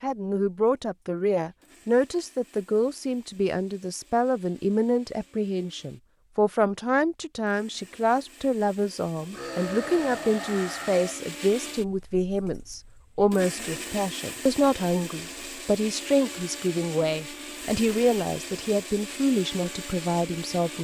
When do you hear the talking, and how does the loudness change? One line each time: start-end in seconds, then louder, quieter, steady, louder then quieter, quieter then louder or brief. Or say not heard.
0.0-20.7 steady.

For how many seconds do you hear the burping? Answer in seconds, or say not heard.
2 s.